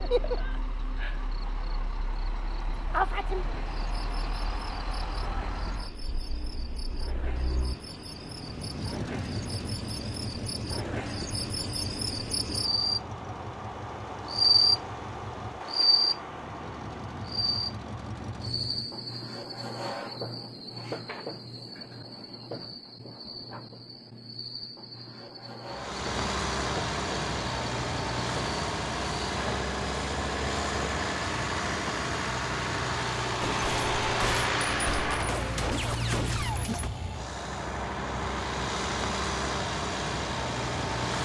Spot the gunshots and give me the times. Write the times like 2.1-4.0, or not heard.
33.4-36.9.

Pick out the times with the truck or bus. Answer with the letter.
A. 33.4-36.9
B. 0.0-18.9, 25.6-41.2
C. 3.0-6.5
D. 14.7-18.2
B.